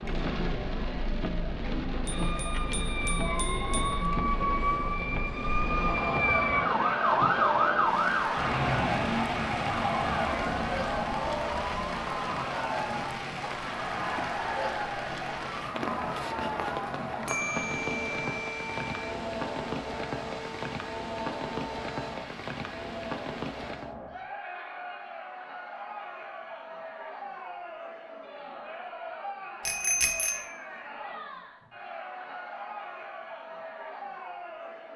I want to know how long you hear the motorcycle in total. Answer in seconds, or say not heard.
not heard.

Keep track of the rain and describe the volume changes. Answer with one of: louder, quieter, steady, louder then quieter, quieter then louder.
steady.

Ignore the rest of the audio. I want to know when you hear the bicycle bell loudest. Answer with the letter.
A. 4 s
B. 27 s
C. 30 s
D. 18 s
C.